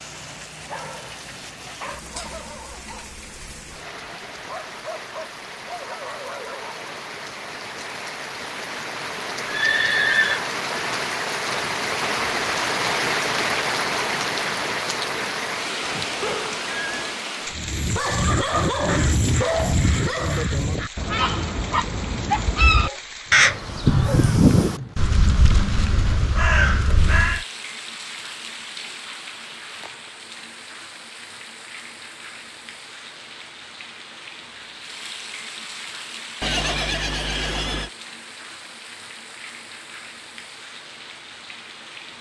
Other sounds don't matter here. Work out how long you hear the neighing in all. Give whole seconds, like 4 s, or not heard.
4 s.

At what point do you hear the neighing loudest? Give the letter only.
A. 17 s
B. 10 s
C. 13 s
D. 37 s
B.